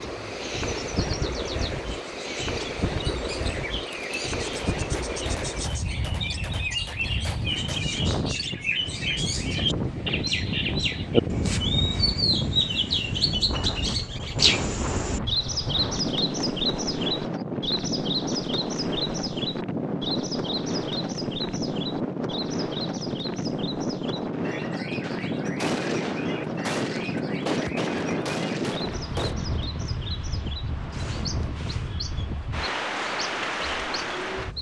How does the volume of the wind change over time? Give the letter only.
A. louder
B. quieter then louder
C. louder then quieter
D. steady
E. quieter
D.